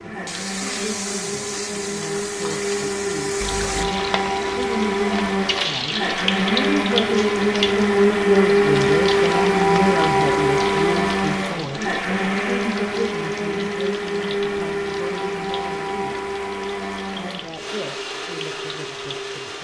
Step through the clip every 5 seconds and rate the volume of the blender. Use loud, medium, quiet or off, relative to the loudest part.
medium, loud, loud, medium.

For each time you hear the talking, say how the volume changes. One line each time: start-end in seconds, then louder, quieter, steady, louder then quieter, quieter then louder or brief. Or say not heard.
0.0-16.1 louder then quieter
17.1-19.6 brief.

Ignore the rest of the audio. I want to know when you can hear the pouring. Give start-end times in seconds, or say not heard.
3.4-4.0.